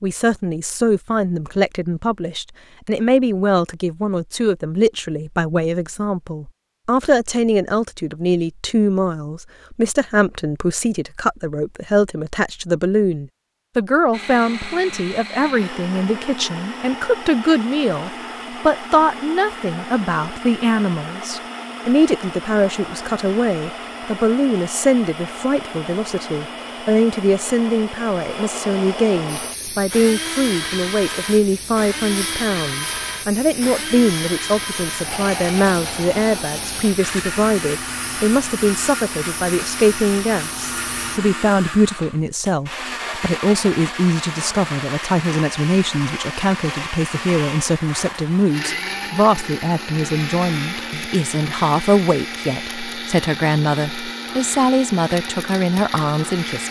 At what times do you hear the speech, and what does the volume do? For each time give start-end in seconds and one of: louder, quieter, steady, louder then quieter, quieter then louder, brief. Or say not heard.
0.0-56.6 steady.